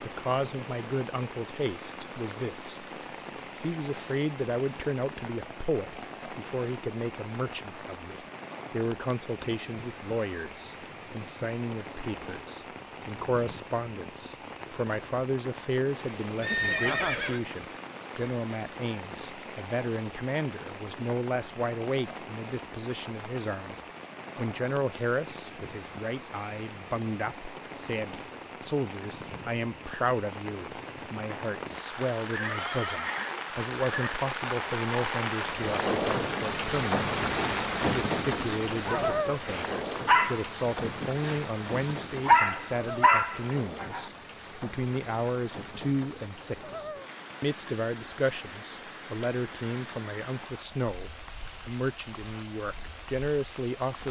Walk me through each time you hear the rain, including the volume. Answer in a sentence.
You can hear the rain from 0.0 to 54.0 s, getting louder then quieter.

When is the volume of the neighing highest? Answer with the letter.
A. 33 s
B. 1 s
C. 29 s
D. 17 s
D.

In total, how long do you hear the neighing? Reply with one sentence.
You can hear the neighing for 3 seconds altogether.